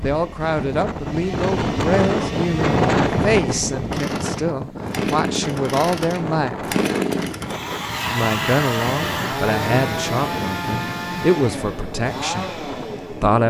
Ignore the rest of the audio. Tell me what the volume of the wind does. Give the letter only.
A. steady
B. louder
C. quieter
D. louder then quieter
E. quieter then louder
C.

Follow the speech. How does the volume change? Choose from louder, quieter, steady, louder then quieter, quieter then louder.
steady.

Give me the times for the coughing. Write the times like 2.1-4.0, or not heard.
not heard.